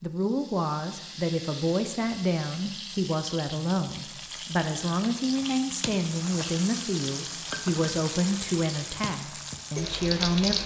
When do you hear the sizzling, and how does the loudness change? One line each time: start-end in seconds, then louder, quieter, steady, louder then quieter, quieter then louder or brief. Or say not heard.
0.0-10.6 louder.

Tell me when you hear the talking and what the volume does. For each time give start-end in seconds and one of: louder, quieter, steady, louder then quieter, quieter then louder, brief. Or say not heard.
0.0-10.6 steady.